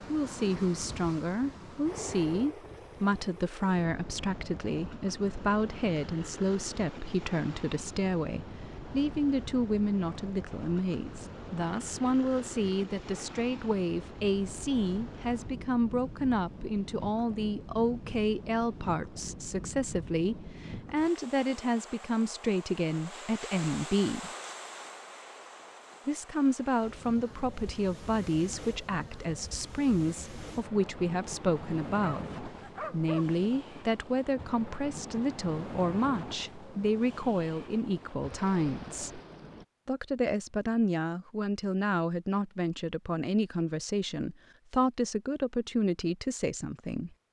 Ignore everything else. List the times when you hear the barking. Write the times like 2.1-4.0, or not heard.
32.0-33.2.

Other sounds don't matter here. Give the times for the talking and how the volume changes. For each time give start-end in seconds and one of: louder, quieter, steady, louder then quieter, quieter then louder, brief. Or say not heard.
0.1-24.3 steady
26.1-39.2 steady
39.9-47.1 steady.